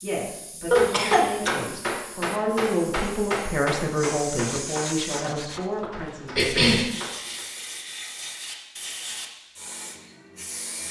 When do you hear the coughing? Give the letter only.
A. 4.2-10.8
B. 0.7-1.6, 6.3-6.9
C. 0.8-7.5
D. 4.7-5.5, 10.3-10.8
B.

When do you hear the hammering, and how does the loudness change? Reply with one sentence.
The hammering can be heard from 0.8 to 7.5 s, getting quieter.